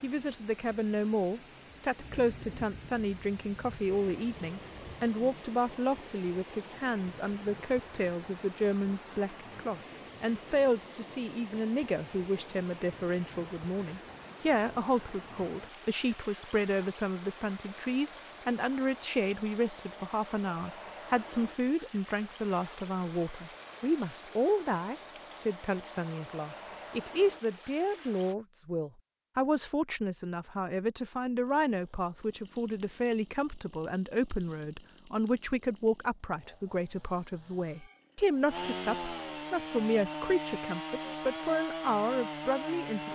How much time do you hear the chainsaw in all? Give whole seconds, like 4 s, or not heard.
12 s.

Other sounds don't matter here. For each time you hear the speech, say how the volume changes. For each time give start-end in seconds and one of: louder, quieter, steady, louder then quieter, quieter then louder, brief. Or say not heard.
0.0-43.1 steady.